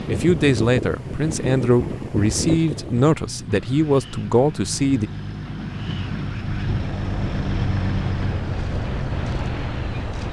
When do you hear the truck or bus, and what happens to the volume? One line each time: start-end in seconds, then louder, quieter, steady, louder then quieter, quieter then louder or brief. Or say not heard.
0.0-10.2 louder.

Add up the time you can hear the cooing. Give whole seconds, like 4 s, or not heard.
not heard.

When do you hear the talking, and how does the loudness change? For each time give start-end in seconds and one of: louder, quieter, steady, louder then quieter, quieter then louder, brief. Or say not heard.
0.1-5.1 steady.